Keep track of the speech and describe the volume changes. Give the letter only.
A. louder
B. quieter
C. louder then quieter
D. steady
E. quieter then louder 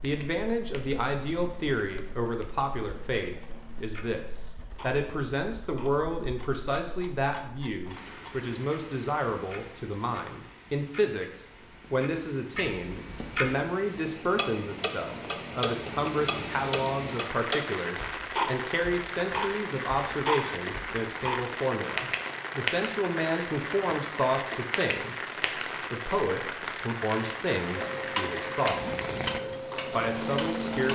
D.